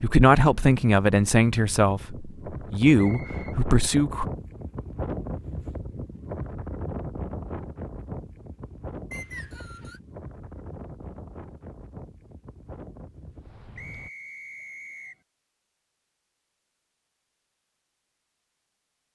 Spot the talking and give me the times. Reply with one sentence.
The talking can be heard from 0.0 to 4.2 s.